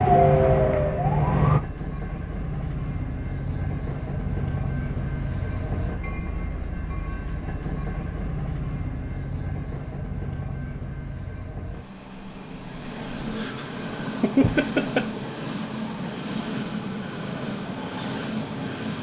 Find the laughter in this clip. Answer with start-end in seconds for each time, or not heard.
13.3-15.2.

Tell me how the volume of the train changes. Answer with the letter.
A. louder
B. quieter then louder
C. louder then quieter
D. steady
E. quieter
D.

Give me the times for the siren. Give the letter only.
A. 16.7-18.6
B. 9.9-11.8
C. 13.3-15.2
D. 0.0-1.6
D.